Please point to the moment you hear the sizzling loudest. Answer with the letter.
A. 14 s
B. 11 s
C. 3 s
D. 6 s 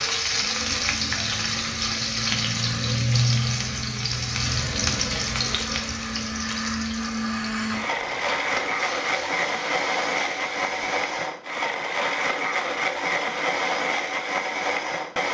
C.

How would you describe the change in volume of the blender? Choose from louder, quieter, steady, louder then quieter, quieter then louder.
louder.